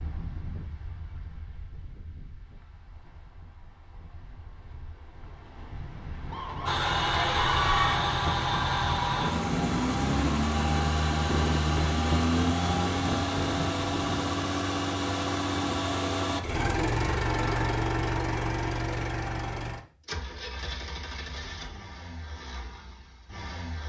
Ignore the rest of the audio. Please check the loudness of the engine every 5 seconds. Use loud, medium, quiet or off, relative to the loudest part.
off, loud, loud, loud, quiet.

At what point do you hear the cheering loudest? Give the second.
8 s.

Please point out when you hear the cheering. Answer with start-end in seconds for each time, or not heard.
6.3-8.1.